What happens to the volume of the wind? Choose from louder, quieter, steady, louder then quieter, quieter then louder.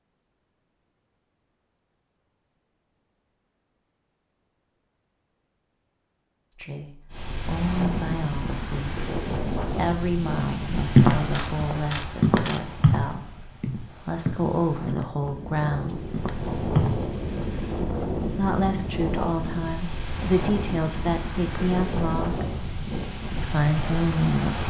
quieter then louder.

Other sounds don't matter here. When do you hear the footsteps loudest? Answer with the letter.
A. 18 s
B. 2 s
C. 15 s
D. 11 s
D.